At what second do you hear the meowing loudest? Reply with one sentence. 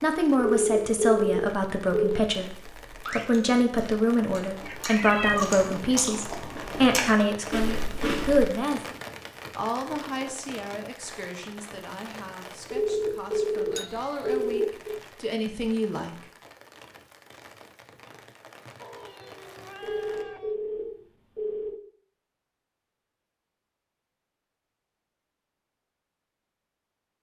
The loudest moment of the meowing is at 5 seconds.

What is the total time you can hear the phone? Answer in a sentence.
You can hear the phone for 6 seconds altogether.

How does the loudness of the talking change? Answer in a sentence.
The loudness of the talking goes down, then up.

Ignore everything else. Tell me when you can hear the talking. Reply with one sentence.
You can hear the talking from 0.0 to 8.8 s and from 9.6 to 16.2 s.